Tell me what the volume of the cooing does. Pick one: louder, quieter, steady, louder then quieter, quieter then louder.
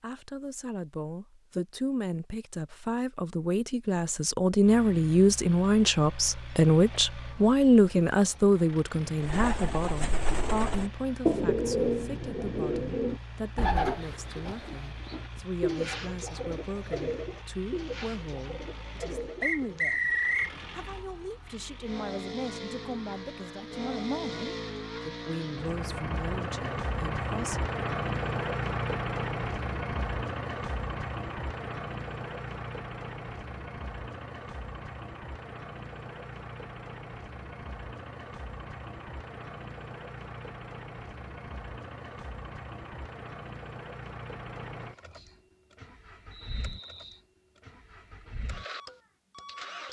quieter.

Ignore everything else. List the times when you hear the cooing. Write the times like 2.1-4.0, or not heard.
9.2-19.9.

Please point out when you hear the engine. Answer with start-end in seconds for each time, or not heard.
4.6-49.8.